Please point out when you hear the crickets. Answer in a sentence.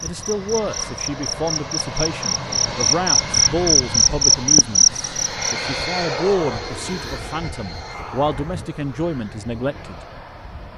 You can hear the crickets from 0.0 to 5.5 s.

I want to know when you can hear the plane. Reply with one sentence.
You can hear the plane from 0.0 to 10.7 s.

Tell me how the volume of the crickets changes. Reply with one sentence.
The loudness of the crickets goes up.